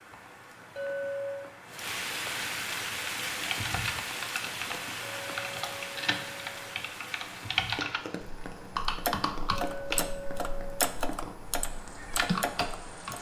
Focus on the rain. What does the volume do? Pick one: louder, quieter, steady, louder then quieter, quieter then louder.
quieter.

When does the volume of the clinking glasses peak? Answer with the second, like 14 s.
1 s.